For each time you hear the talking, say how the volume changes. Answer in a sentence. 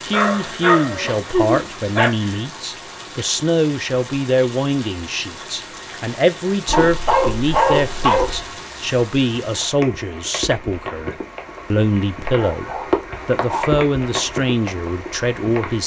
You can hear the talking from 0.0 to 15.8 s, at a steady volume.